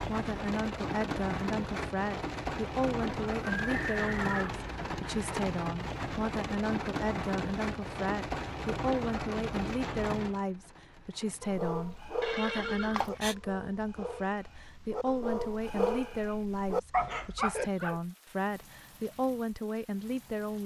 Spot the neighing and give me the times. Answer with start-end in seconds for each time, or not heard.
3.5-4.6, 12.2-13.3.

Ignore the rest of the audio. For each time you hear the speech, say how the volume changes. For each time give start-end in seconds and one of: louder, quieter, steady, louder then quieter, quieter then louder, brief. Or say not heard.
0.0-20.6 steady.